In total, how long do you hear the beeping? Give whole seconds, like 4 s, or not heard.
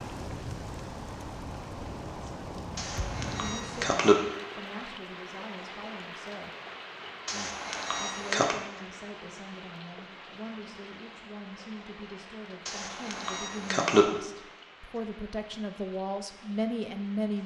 4 s.